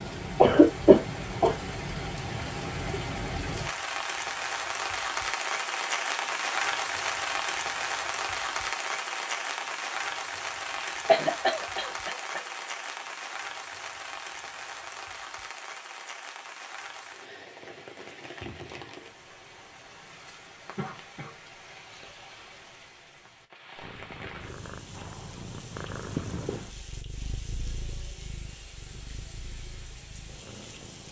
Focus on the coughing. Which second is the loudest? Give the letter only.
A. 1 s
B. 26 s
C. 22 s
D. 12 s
A.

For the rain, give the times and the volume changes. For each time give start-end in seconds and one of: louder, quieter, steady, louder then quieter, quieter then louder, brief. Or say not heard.
0.0-31.0 quieter.